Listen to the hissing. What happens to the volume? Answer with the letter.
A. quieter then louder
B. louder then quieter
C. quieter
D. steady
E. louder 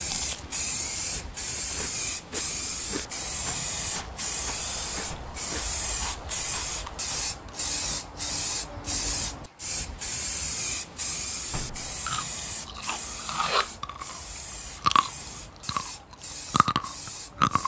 C.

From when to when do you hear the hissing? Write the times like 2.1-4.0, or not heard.
0.0-17.6.